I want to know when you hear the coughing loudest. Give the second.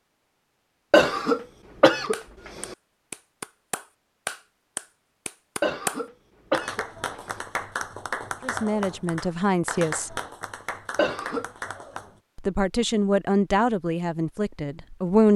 1 s.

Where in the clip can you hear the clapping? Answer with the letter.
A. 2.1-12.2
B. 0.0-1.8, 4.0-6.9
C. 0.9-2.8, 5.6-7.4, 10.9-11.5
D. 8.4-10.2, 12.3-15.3
A.